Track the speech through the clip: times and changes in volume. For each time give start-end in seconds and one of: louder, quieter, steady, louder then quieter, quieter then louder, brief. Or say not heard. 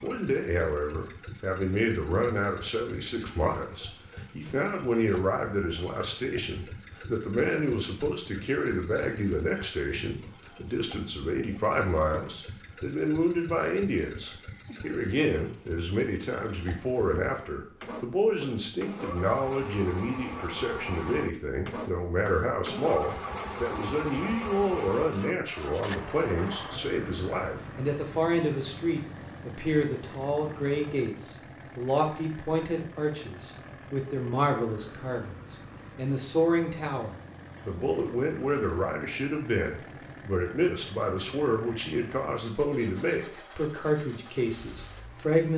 0.0-45.5 steady.